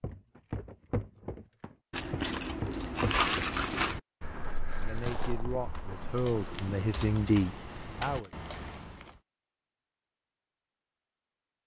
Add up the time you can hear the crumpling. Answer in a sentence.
The crumpling can be heard for 5 seconds in total.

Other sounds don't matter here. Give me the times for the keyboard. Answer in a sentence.
The keyboard can be heard from 2.6 to 9.2 s.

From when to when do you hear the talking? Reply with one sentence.
The talking can be heard from 4.8 to 8.3 s.